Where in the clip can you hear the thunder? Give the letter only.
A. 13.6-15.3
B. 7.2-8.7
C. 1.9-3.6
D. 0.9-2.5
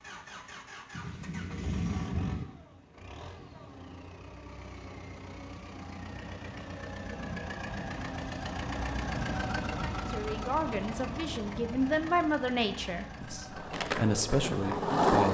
D.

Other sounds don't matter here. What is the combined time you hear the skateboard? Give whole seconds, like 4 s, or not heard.
2 s.